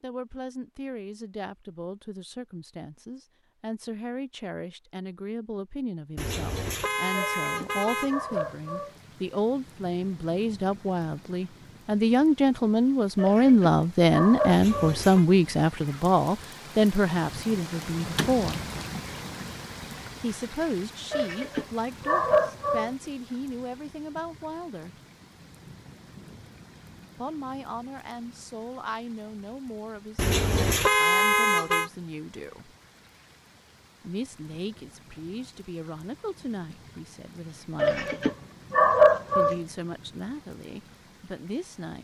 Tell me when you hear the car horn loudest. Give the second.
31 s.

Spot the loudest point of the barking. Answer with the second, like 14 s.
39 s.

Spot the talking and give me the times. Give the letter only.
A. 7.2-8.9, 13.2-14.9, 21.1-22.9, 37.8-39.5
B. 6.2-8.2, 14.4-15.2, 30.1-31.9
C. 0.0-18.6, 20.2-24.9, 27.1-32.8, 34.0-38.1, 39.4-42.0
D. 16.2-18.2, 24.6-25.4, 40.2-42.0
C.